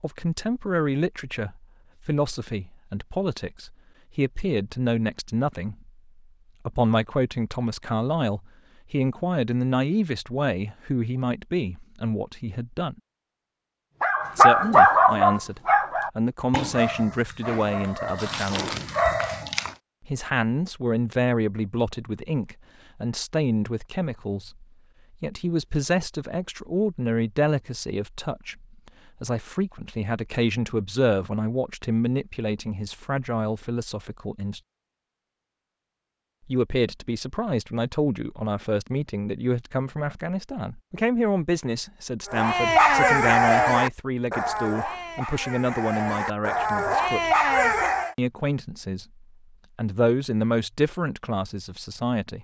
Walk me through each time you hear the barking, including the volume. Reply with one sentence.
The barking can be heard from 14.0 to 19.8 s, getting quieter then louder; and from 42.3 to 48.1 s, getting quieter then louder.